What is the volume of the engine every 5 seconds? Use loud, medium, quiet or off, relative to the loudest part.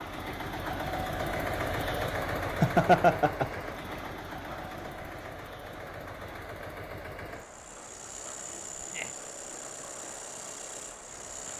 loud, medium, medium.